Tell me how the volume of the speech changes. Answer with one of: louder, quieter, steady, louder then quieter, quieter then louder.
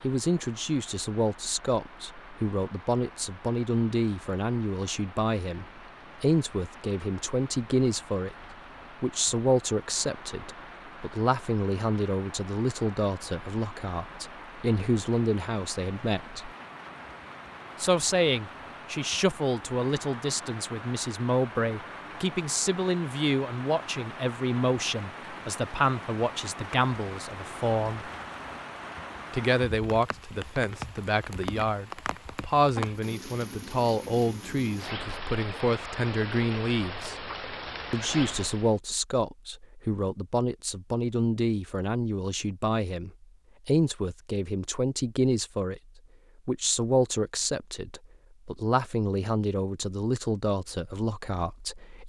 steady.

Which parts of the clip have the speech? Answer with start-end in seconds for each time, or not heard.
0.0-8.3, 9.0-16.5, 17.8-28.1, 29.3-37.1, 37.9-45.8, 46.5-52.0.